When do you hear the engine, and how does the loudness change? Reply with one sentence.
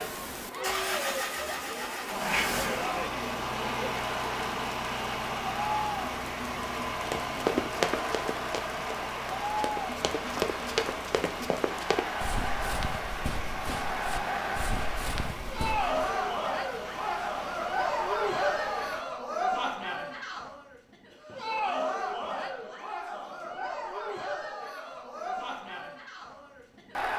The engine can be heard from 0.0 to 19.1 s, getting quieter.